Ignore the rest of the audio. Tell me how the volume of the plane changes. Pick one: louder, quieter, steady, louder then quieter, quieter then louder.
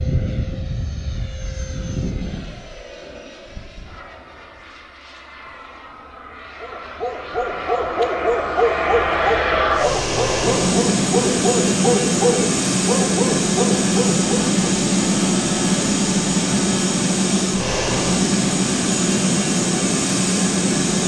louder.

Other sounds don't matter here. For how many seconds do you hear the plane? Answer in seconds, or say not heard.
21 s.